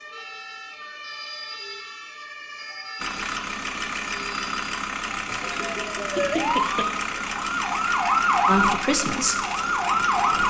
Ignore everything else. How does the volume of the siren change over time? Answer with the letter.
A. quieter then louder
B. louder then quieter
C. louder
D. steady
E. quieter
C.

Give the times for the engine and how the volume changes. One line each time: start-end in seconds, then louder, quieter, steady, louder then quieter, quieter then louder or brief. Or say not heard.
3.0-10.4 steady.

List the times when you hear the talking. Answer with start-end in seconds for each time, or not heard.
8.4-9.4.